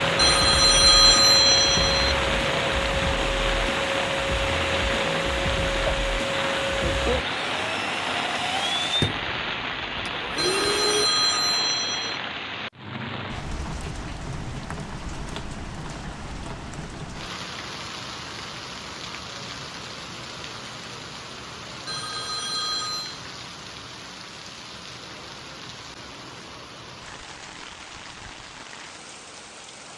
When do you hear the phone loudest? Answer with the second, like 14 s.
1 s.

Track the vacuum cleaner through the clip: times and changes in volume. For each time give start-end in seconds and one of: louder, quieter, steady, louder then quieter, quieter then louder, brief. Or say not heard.
0.0-11.1 steady.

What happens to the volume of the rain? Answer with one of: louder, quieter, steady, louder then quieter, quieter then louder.
quieter.